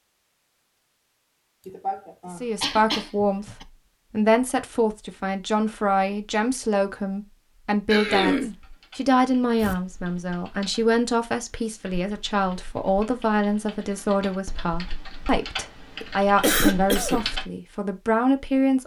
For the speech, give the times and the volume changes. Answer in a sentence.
You can hear the speech from 2.4 to 18.8 s, at a steady volume.